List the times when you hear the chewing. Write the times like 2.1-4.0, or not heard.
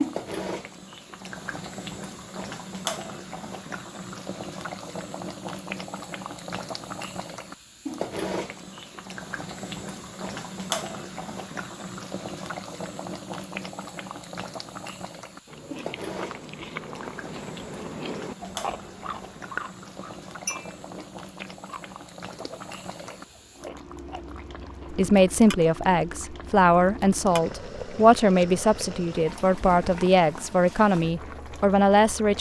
15.4-25.1.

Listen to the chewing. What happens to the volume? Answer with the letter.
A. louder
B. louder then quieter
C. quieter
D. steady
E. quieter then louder
C.